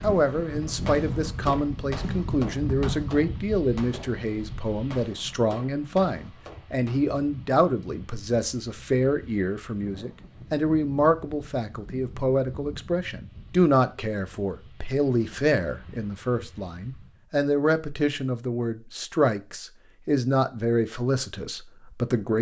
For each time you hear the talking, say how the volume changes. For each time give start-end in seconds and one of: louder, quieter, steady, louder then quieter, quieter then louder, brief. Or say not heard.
0.0-22.3 steady.